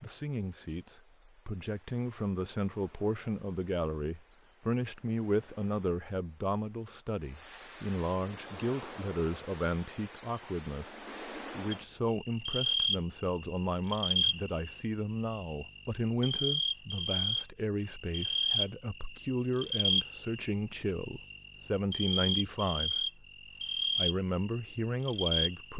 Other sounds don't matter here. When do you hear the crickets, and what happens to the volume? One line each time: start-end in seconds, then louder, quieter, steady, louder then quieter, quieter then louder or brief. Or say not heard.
0.0-25.7 louder.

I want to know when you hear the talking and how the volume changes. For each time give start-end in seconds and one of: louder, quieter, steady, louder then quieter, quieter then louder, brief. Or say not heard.
0.0-25.7 steady.